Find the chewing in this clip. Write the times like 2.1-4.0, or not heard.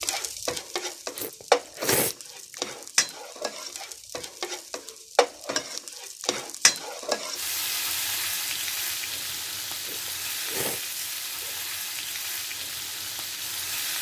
1.1-2.8, 9.8-11.6.